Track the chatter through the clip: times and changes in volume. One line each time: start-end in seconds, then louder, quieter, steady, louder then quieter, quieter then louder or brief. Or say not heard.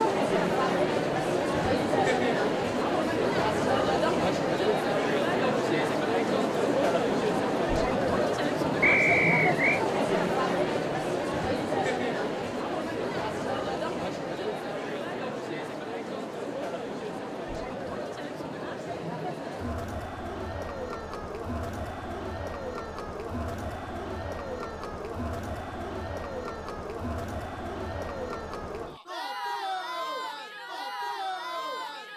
0.0-32.1 quieter.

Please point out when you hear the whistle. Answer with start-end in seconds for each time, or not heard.
8.8-9.8.